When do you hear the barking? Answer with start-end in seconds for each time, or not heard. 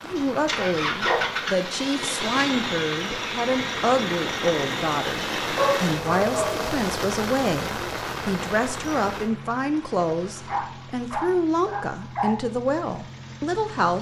0.5-1.3, 5.5-6.8, 10.4-12.3.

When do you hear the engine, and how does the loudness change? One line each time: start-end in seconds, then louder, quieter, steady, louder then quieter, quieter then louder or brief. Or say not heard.
0.0-13.9 quieter.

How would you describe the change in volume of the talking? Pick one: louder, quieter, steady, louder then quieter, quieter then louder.
steady.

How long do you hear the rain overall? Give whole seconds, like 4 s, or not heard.
9 s.